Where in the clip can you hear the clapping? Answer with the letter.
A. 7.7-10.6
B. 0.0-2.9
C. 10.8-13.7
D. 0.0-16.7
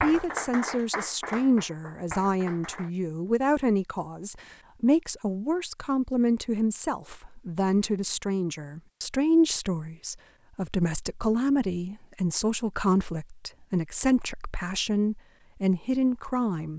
B.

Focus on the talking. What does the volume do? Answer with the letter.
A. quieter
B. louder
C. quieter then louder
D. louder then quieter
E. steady
E.